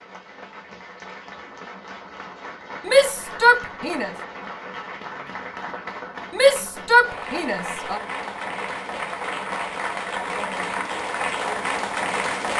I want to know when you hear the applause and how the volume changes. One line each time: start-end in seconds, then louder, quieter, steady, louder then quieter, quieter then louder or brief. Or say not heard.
0.0-12.5 louder.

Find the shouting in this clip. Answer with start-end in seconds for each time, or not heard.
2.9-4.1, 6.3-8.0.